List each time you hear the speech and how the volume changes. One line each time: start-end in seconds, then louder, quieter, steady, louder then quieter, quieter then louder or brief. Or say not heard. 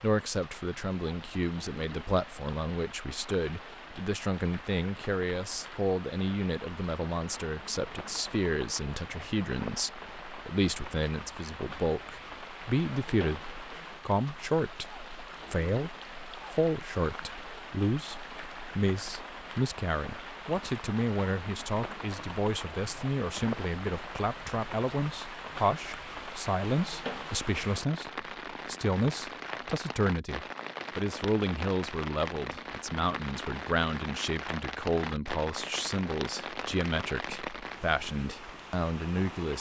0.0-39.5 steady.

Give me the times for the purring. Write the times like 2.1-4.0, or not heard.
not heard.